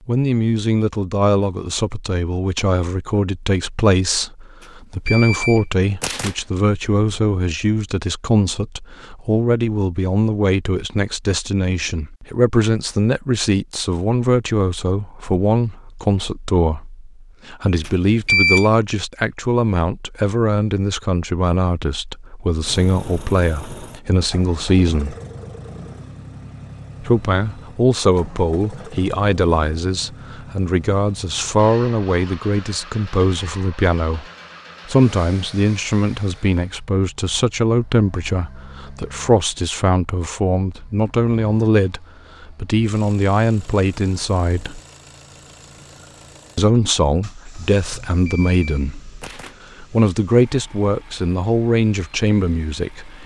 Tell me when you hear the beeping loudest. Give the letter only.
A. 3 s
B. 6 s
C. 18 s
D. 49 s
C.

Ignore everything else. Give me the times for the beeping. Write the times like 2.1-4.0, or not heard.
5.0-6.3, 17.9-18.7, 48.2-49.5.